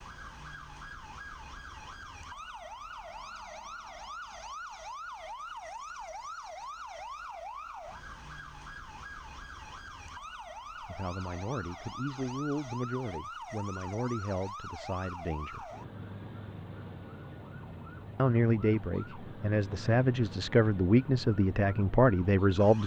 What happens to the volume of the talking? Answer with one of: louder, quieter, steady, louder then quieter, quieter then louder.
louder.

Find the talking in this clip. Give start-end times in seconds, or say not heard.
10.8-15.7, 18.1-22.8.